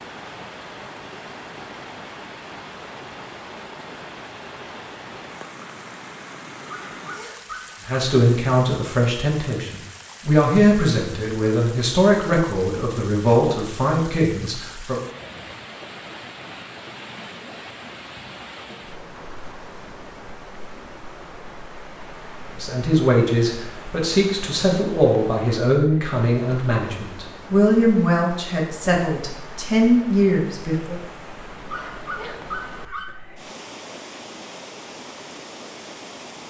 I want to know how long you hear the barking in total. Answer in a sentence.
You can hear the barking for 3 seconds altogether.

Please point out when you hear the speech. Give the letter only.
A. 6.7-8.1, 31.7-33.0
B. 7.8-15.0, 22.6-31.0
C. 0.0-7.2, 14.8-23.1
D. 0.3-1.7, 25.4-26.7
B.